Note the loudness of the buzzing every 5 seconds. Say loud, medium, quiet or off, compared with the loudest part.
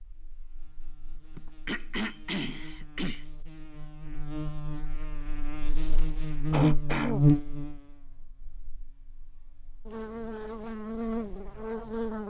quiet, loud, medium.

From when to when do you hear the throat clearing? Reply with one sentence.
You can hear the throat clearing from 1.4 to 3.2 s and from 6.5 to 7.2 s.